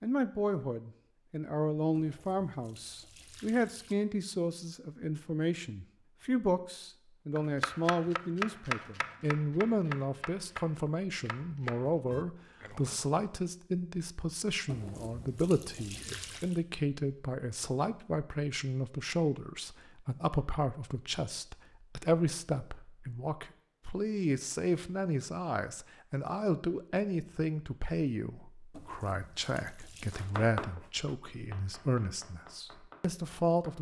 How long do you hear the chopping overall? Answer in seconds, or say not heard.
9 s.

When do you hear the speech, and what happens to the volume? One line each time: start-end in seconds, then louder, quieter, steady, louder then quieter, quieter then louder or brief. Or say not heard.
0.0-33.7 steady.